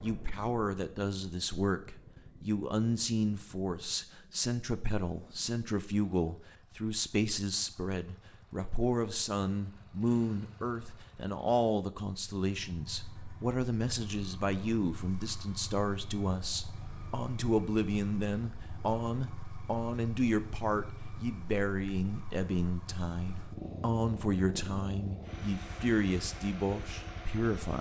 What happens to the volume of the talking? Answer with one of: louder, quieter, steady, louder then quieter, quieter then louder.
steady.